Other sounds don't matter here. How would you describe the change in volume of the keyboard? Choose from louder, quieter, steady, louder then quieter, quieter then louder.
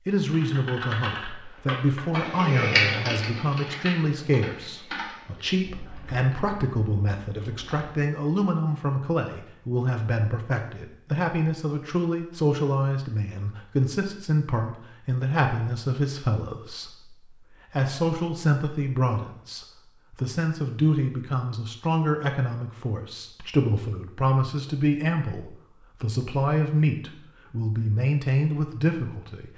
louder then quieter.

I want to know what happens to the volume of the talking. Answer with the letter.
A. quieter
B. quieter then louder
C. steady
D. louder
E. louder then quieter
C.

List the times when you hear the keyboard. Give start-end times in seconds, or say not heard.
0.3-8.0.